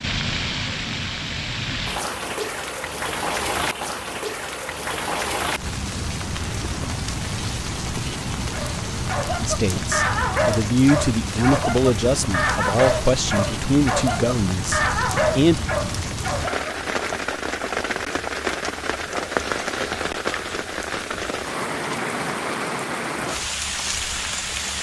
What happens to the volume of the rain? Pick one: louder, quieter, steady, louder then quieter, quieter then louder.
steady.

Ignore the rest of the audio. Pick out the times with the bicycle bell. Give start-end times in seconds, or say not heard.
not heard.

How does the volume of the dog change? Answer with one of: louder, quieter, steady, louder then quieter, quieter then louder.
steady.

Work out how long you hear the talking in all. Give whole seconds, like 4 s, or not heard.
6 s.